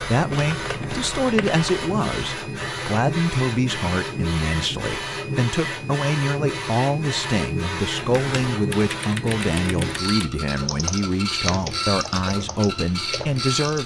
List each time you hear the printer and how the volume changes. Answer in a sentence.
You can hear the printer from 0.0 to 13.8 s, at a steady volume.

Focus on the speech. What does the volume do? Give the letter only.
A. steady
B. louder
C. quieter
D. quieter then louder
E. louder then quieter
A.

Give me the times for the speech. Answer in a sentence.
The speech can be heard from 0.0 to 13.8 s.